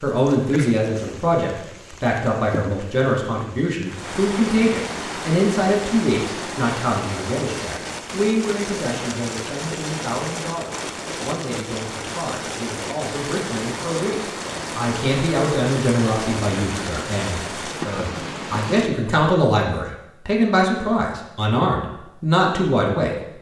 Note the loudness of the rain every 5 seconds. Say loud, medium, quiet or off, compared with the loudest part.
medium, loud, loud, loud, off.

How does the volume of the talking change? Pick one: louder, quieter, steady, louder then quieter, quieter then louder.
quieter then louder.